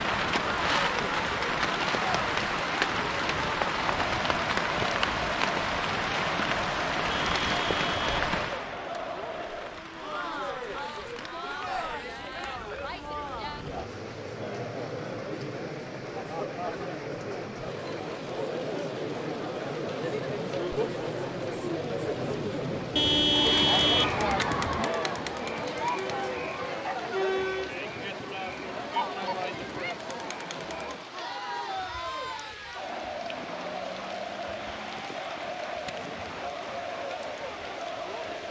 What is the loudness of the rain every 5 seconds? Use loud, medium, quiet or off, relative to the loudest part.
loud, loud, quiet, quiet, quiet, quiet, quiet, quiet.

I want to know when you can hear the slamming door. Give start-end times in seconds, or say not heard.
not heard.